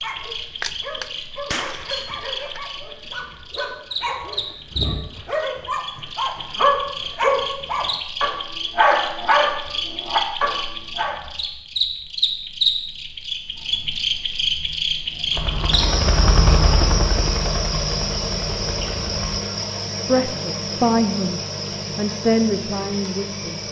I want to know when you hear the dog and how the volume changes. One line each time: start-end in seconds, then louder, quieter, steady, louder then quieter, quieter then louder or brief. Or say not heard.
0.0-11.2 louder.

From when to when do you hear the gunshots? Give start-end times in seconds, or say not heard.
0.6-2.6.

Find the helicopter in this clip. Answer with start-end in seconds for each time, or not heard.
15.3-19.4.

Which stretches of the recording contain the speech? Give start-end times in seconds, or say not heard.
20.1-23.6.